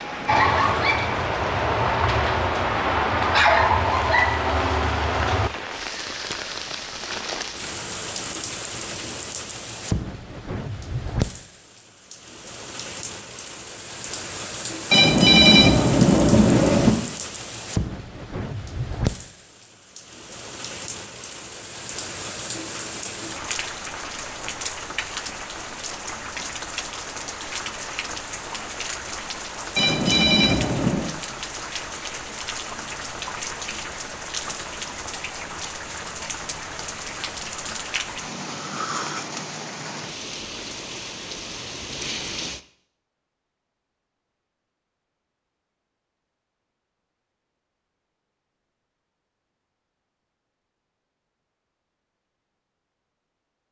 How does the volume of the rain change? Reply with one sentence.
The volume of the rain stays about the same.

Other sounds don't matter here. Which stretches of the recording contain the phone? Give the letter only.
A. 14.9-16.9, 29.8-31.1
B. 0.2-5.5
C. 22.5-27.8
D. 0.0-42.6
A.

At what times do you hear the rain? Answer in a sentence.
The rain can be heard from 0.0 to 42.6 s.